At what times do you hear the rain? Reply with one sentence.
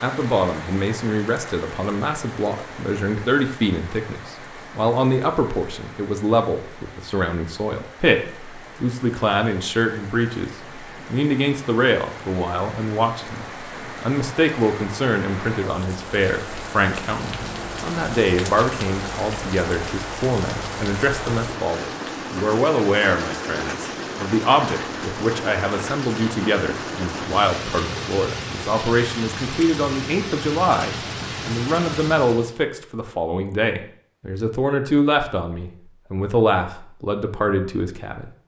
You can hear the rain from 0.0 to 32.6 s.